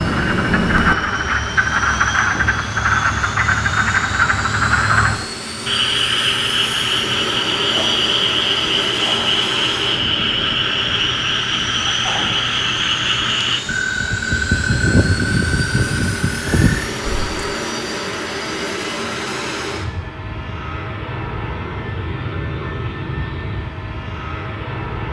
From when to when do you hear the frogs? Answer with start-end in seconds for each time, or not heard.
0.0-17.4.